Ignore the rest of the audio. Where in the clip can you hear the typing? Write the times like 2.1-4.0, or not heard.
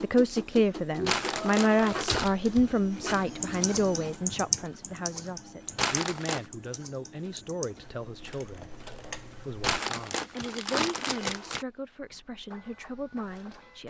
2.0-10.6.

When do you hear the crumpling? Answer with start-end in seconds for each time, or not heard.
1.1-2.3, 5.8-6.5, 9.6-11.7.